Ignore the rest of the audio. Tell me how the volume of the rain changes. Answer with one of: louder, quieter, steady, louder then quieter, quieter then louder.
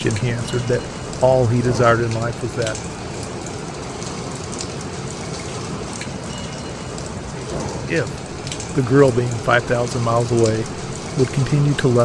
steady.